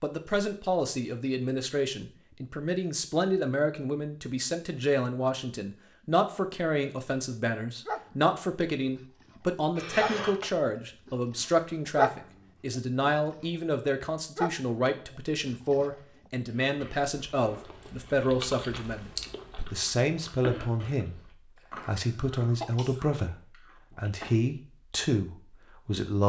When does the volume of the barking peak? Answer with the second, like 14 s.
12 s.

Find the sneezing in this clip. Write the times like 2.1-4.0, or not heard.
9.8-10.5, 21.9-23.0.